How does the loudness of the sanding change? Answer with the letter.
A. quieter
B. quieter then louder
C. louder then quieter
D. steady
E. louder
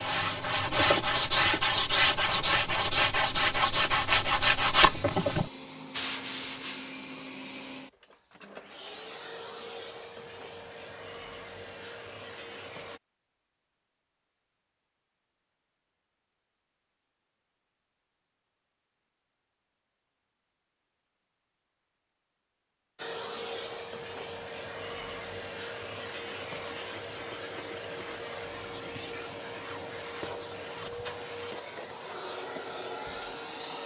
A.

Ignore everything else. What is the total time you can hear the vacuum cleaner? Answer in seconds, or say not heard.
24 s.